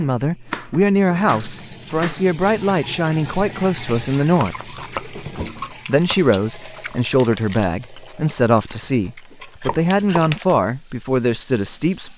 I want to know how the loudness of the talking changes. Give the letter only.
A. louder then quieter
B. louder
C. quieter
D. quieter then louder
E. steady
E.